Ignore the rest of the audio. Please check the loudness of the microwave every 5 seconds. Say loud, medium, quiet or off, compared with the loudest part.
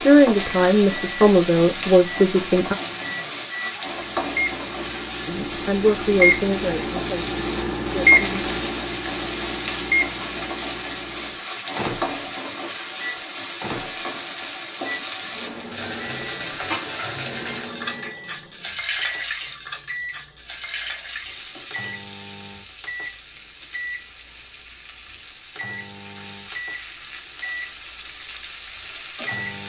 medium, loud, medium, quiet, quiet, quiet.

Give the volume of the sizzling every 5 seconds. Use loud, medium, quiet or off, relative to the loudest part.
loud, loud, loud, loud, medium, medium.